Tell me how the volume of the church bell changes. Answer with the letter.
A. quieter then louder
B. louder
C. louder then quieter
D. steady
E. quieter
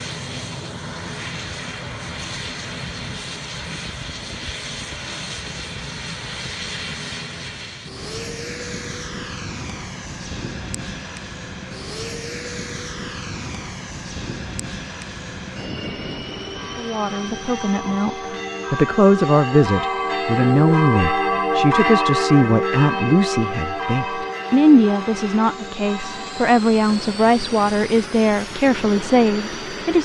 C.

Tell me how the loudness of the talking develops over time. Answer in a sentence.
The loudness of the talking stays about the same.